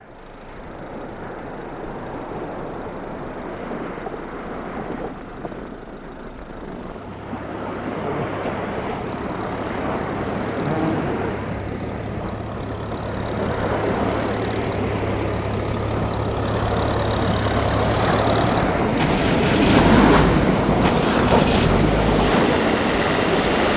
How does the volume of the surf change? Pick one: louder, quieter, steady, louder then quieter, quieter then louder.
louder.